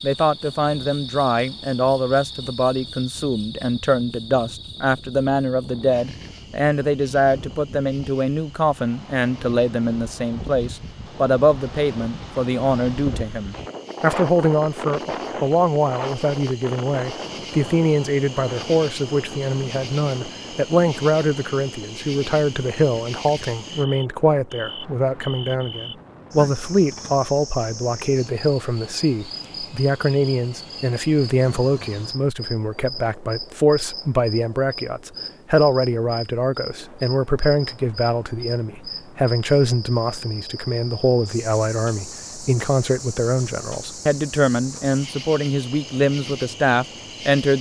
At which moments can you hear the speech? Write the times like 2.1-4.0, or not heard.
0.0-47.5.